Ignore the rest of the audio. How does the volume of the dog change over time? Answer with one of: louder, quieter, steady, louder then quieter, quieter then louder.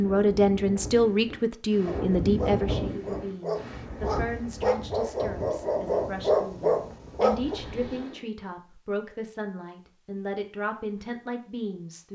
louder.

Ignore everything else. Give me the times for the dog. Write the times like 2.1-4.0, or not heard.
1.9-7.5.